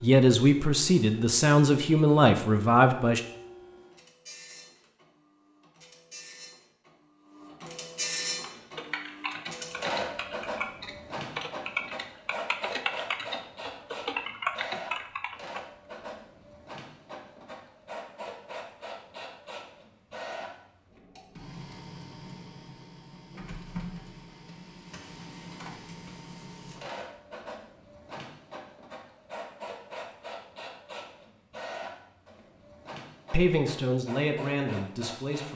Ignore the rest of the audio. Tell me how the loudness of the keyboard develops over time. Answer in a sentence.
The loudness of the keyboard goes up.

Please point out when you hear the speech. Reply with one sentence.
You can hear the speech from 0.0 to 3.2 s and from 33.3 to 35.5 s.